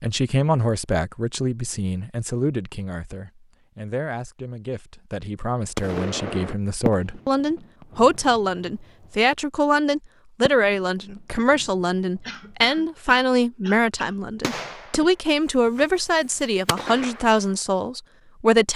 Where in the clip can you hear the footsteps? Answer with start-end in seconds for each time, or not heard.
not heard.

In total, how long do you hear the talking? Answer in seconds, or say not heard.
19 s.